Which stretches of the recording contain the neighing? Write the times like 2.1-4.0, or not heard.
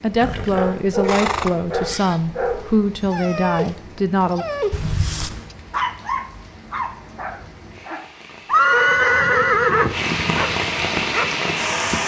0.2-2.1, 4.7-5.5, 8.4-10.0.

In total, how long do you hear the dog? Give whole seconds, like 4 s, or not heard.
11 s.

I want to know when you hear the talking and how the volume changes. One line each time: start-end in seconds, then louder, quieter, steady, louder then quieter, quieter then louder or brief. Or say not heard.
0.0-4.5 steady.